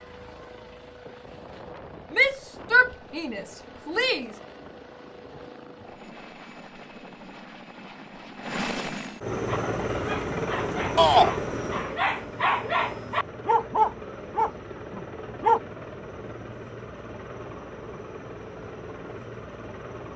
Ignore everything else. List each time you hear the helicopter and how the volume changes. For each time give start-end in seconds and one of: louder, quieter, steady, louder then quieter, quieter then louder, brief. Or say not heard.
0.0-20.1 louder then quieter.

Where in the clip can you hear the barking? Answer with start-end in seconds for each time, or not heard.
9.4-15.6.